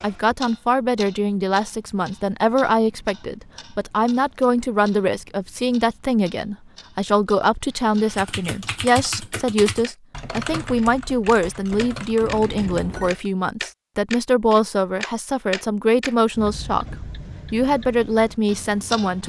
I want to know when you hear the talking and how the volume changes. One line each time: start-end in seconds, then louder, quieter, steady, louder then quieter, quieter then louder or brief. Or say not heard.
0.0-19.2 steady.